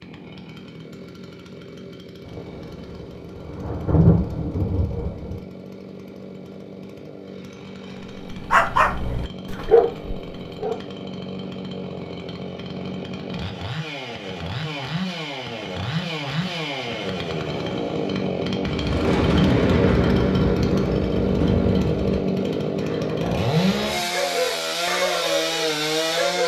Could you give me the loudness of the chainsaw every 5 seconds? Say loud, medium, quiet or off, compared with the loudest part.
quiet, quiet, medium, loud, loud, loud.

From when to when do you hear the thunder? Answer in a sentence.
You can hear the thunder from 2.2 to 5.4 s and from 18.6 to 22.2 s.